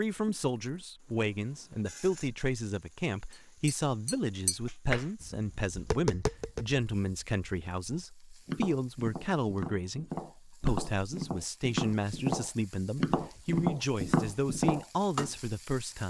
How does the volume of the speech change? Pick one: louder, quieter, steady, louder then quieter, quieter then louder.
steady.